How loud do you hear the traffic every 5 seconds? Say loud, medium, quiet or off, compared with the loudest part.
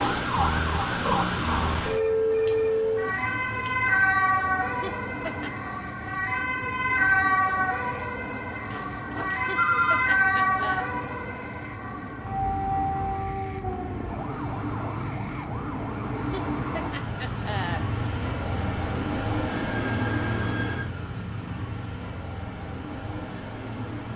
medium, medium, medium, loud, loud.